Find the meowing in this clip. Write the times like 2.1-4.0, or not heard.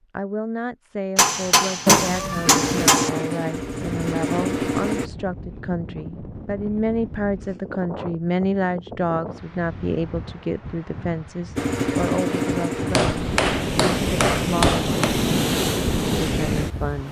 1.9-3.0.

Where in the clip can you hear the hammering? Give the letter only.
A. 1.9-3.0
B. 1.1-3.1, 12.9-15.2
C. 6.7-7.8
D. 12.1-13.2
B.